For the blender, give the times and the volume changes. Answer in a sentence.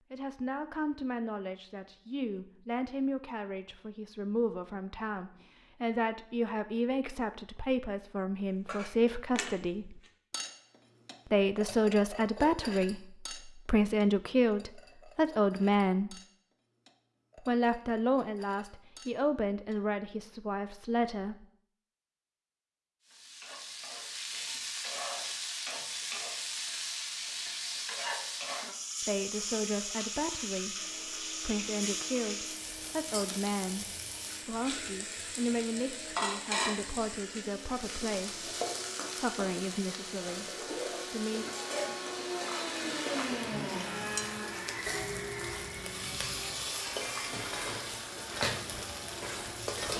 You can hear the blender from 30.7 to 49.9 s, getting louder then quieter.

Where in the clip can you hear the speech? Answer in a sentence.
The speech can be heard from 0.1 to 10.0 s, from 11.2 to 16.2 s, from 17.4 to 21.4 s, from 29.0 to 38.5 s and from 39.2 to 41.5 s.